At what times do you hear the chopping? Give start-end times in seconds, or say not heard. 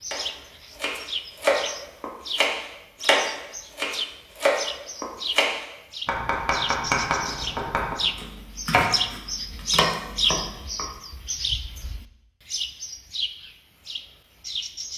0.1-10.8.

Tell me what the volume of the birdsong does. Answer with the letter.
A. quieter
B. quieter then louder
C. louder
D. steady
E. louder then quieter
E.